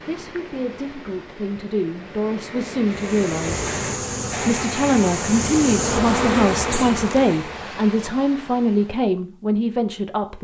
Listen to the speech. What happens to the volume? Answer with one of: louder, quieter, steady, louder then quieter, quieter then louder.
louder.